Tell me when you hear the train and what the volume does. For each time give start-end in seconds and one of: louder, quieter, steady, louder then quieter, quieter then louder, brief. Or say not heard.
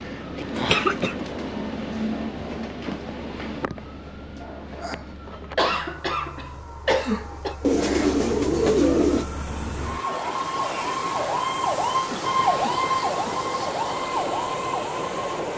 0.0-15.5 quieter then louder.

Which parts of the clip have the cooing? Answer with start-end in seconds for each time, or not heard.
7.6-9.2.